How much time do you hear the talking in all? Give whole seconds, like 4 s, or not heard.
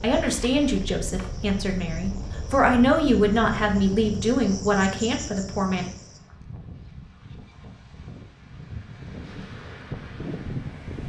6 s.